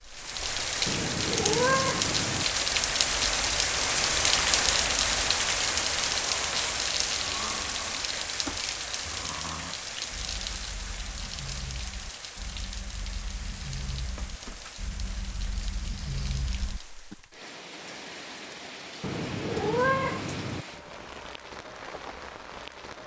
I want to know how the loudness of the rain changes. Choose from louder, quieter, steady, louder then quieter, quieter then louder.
quieter.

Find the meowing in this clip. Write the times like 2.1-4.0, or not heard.
0.8-2.5, 19.0-20.6.